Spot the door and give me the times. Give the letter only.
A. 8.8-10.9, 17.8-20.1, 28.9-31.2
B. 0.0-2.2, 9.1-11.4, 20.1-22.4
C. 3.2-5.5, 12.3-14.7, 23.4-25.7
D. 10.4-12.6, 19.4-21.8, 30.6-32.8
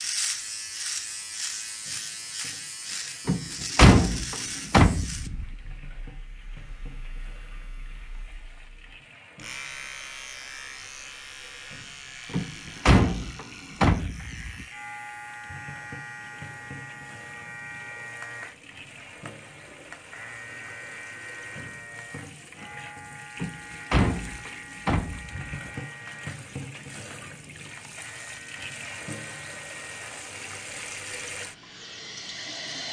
C.